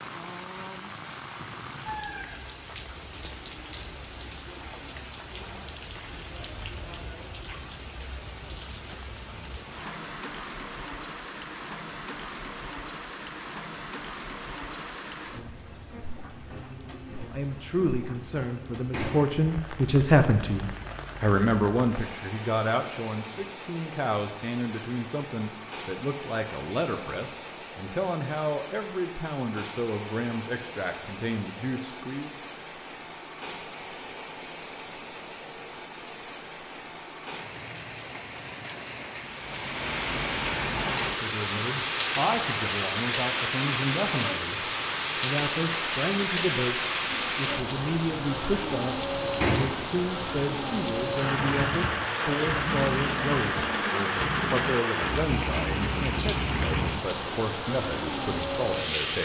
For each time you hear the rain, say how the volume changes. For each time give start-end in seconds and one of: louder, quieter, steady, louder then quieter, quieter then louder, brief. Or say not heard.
0.0-59.1 louder.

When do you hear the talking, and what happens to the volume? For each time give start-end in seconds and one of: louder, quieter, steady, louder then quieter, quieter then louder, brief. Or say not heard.
17.3-32.3 quieter
41.1-59.1 steady.